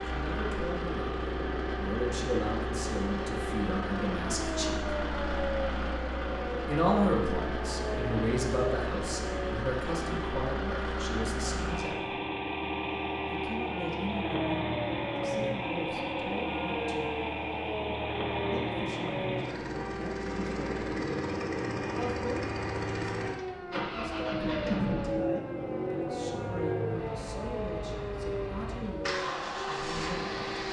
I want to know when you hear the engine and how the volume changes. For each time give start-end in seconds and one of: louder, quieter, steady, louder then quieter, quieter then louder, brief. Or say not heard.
0.0-30.6 steady.